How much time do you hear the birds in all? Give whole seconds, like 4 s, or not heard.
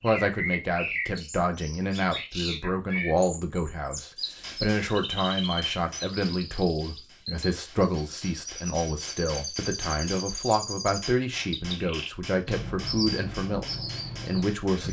15 s.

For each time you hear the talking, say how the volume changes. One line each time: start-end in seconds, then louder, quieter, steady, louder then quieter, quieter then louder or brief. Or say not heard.
0.0-14.8 steady.